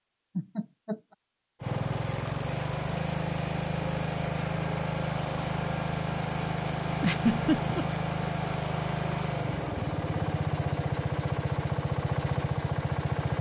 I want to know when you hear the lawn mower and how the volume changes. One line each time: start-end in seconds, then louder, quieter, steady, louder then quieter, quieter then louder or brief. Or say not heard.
1.6-13.3 steady.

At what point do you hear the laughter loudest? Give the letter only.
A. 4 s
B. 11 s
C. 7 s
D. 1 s
C.